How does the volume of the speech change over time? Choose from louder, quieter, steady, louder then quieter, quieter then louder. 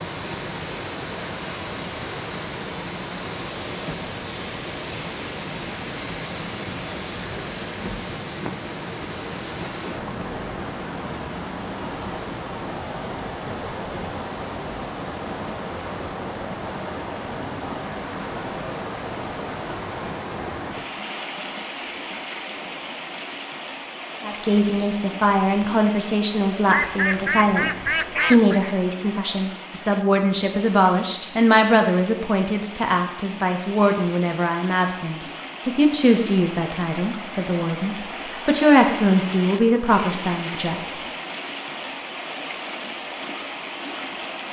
steady.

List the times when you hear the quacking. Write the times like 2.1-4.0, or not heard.
26.6-28.6.